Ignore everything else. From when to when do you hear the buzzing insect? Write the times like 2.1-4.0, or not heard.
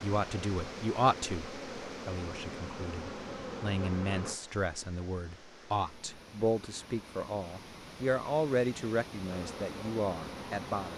0.0-4.4, 9.2-10.9.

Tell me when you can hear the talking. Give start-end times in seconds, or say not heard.
0.0-10.9.